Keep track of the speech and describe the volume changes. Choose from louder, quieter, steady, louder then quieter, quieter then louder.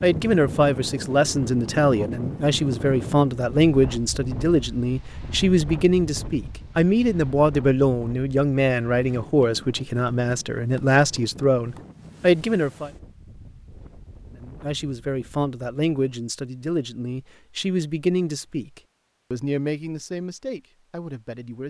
quieter.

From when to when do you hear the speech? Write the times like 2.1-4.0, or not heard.
0.0-12.9, 14.4-21.6.